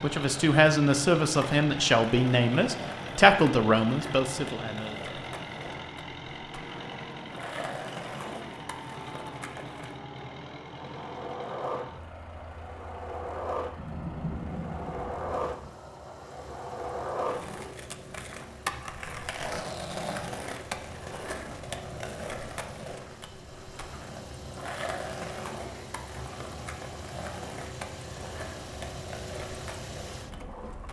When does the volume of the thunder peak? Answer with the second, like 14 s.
14 s.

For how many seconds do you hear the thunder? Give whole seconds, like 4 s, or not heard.
2 s.